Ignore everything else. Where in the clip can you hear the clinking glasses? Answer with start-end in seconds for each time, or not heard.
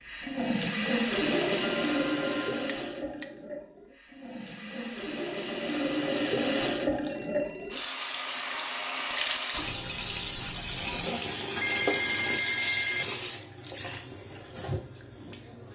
2.6-3.3, 9.5-11.1.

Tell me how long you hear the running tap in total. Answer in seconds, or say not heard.
16 s.